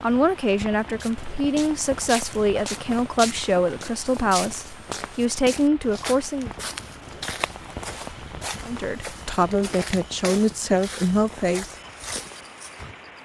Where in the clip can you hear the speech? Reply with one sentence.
The speech can be heard from 0.0 to 6.5 s and from 8.7 to 11.7 s.